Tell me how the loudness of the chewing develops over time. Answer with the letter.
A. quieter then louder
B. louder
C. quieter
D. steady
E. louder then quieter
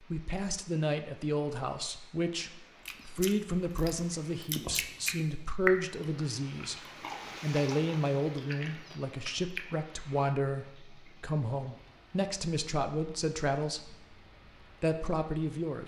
E.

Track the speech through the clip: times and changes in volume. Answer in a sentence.
You can hear the speech from 0.0 to 15.8 s, at a steady volume.